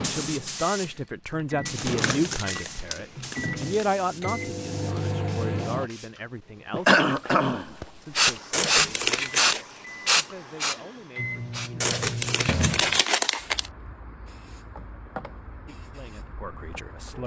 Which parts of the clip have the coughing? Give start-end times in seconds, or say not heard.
6.8-8.3.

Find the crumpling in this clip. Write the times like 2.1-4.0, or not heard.
1.8-3.9, 8.5-9.7, 11.8-13.7.